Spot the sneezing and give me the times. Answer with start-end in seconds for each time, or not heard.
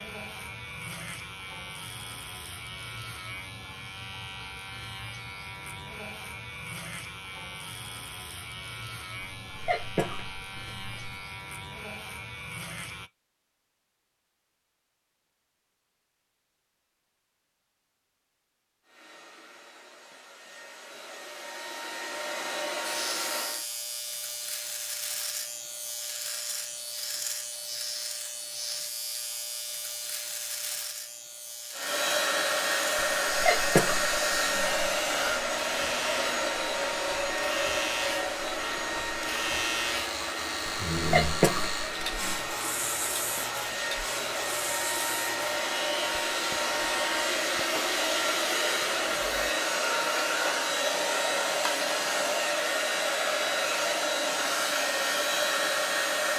9.2-11.2, 33.0-35.0, 40.6-42.4.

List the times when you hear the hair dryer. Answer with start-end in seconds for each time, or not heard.
18.9-23.6, 31.7-56.3.